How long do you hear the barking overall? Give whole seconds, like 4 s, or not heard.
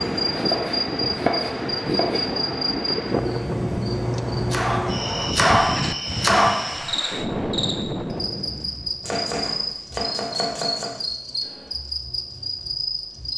not heard.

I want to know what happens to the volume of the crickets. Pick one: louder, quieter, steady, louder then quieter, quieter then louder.
steady.